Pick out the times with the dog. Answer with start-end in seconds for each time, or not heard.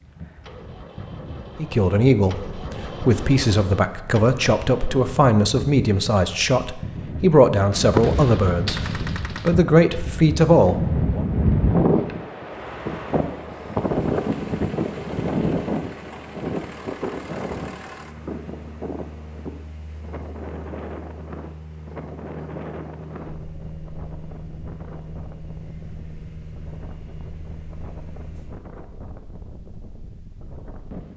not heard.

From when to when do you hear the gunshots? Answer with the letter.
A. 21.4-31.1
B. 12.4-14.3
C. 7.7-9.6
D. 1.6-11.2
C.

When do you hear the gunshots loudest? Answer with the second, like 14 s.
8 s.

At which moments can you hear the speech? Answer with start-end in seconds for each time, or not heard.
1.6-11.2.